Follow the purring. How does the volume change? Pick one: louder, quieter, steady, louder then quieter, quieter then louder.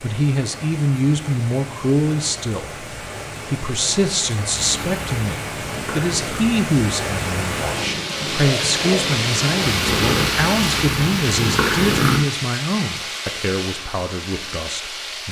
louder.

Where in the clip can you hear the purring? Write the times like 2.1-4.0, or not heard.
4.5-12.2.